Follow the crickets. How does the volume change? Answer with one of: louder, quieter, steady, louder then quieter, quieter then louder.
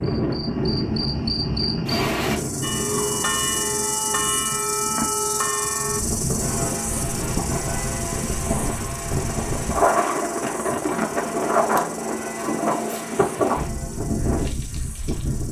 quieter.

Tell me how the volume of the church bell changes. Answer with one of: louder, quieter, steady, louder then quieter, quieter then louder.
quieter.